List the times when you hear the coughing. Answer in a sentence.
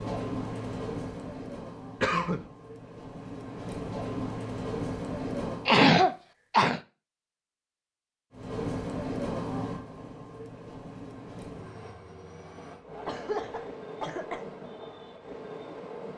The coughing can be heard from 2.0 to 2.5 s, from 5.7 to 6.8 s and from 13.1 to 14.5 s.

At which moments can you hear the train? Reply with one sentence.
The train can be heard from 0.0 to 5.8 s and from 8.3 to 16.1 s.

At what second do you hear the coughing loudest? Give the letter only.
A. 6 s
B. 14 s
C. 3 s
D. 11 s
A.